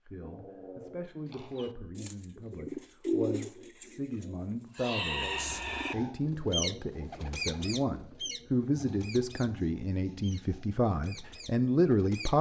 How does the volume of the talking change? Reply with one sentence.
The volume of the talking goes up.